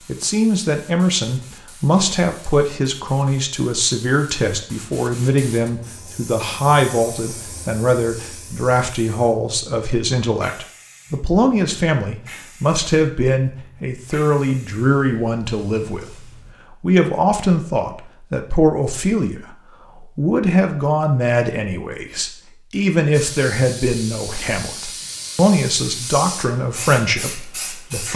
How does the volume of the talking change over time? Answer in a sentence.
The volume of the talking stays about the same.